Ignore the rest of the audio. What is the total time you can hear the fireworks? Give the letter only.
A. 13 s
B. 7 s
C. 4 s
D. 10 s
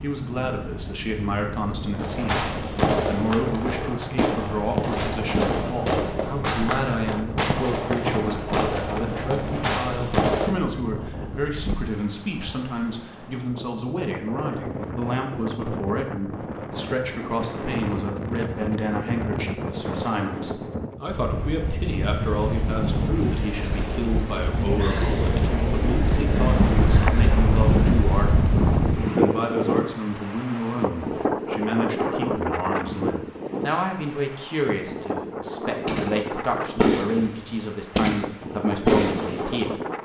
A.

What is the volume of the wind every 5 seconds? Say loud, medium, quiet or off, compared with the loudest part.
quiet, quiet, quiet, medium, medium, loud, medium, medium.